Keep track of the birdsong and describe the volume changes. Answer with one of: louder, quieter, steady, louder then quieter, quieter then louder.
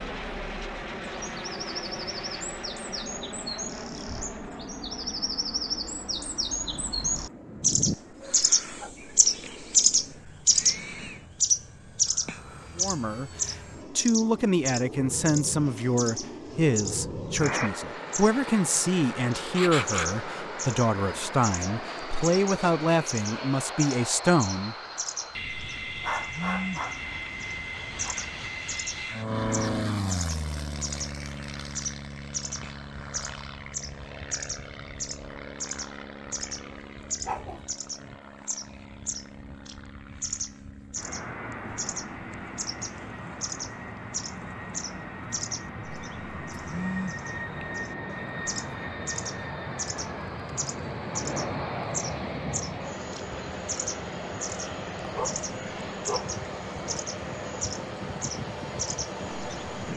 louder then quieter.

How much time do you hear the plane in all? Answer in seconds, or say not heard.
60 s.